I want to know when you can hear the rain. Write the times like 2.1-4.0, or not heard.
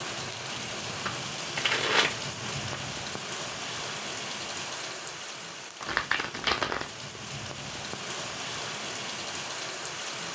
0.0-10.3.